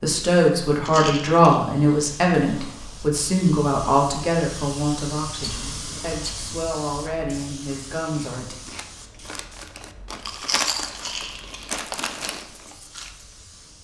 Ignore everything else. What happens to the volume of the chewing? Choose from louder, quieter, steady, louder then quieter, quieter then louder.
louder then quieter.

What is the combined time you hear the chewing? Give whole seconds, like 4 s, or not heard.
5 s.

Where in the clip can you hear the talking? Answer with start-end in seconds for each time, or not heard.
0.0-8.6.